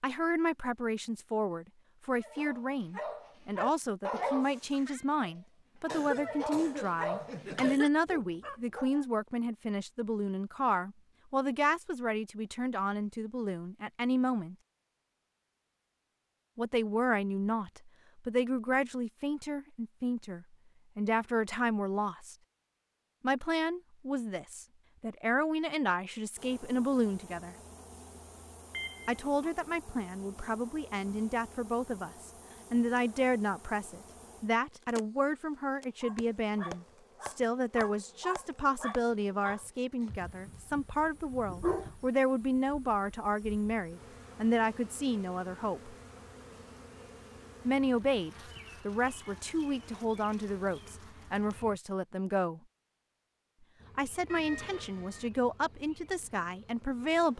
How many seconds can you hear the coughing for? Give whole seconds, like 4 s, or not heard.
2 s.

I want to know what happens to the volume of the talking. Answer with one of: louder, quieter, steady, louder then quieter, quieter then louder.
steady.